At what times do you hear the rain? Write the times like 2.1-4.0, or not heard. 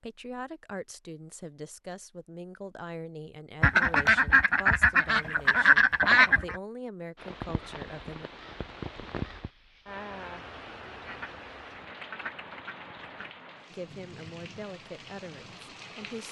7.2-16.2.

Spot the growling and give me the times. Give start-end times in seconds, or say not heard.
not heard.